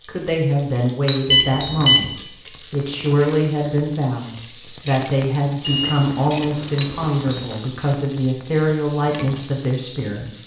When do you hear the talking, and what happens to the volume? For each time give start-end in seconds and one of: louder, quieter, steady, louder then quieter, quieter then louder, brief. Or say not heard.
0.1-10.4 steady.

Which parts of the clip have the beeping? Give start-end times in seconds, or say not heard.
1.2-2.1, 5.6-7.2.